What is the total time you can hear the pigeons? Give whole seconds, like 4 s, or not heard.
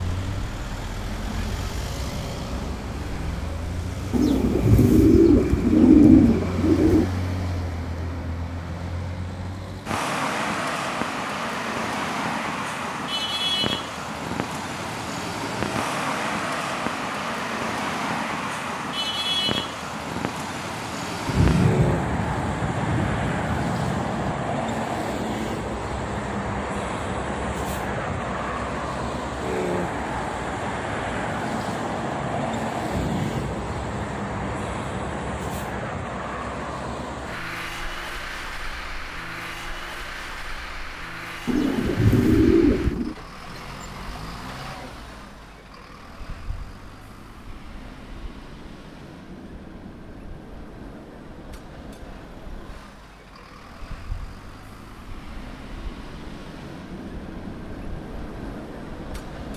5 s.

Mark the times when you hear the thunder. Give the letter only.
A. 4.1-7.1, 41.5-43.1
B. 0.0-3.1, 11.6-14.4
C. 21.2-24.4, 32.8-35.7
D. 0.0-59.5
C.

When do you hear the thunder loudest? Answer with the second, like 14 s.
22 s.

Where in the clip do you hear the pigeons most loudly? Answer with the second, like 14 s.
6 s.